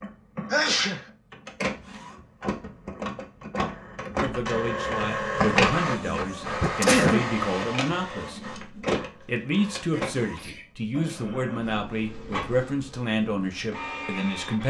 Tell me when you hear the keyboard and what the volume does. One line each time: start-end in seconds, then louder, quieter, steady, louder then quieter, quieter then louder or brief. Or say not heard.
not heard.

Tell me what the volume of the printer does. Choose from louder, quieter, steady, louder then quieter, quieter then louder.
louder then quieter.